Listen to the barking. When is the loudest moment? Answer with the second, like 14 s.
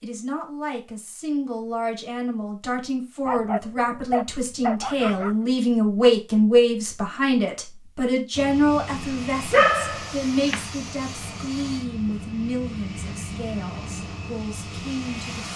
10 s.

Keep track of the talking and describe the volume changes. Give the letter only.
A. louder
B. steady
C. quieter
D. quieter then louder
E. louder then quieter
E.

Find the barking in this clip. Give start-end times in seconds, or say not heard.
3.2-5.3, 9.5-10.7.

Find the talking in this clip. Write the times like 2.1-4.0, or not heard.
0.0-15.5.